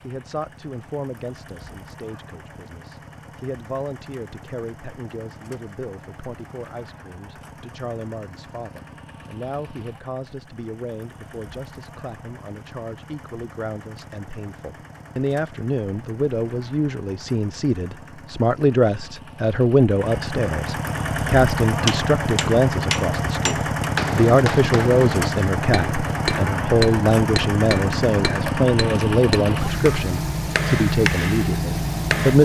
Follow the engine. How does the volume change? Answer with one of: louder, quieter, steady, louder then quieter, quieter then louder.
louder.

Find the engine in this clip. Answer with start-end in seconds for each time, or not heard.
0.0-32.4.